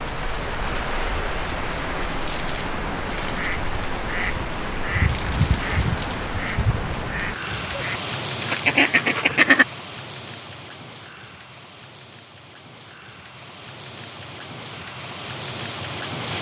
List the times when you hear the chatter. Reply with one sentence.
You can't hear the chatter here.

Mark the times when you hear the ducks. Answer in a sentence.
You can hear the ducks from 3.3 to 9.7 s.